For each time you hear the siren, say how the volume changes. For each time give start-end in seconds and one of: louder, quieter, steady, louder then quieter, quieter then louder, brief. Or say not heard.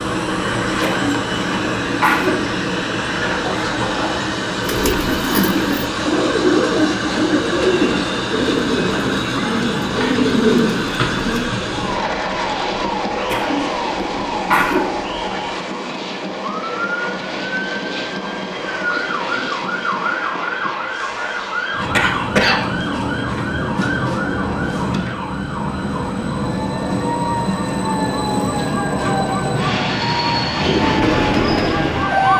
0.0-32.3 steady.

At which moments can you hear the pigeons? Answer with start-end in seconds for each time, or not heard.
4.6-11.5, 30.6-32.2.